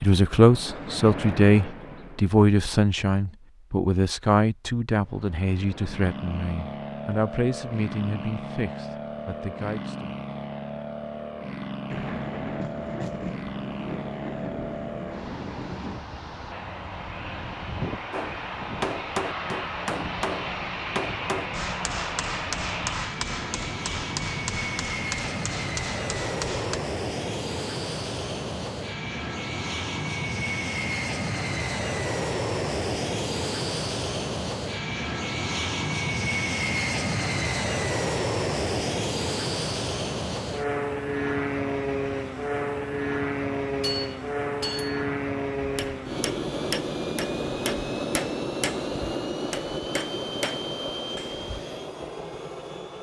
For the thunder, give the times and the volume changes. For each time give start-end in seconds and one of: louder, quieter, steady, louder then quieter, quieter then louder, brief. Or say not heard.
11.9-16.0 steady.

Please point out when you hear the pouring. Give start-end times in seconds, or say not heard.
not heard.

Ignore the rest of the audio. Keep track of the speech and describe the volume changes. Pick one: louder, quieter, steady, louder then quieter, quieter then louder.
quieter.